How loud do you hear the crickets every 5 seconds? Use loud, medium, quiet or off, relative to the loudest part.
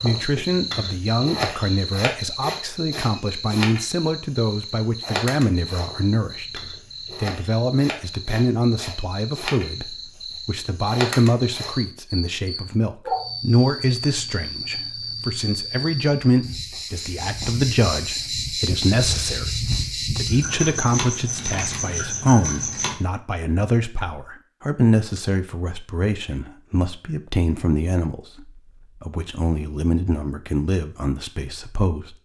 loud, medium, loud, loud, loud, off, off.